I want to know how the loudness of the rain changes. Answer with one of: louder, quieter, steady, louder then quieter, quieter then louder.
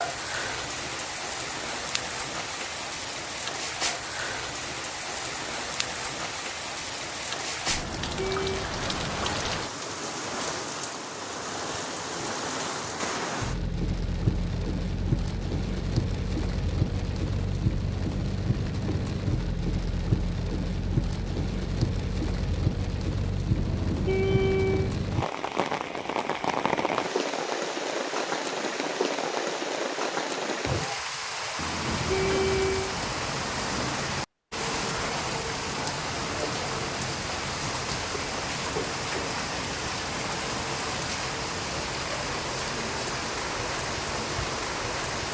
steady.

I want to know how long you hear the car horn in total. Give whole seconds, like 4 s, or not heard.
4 s.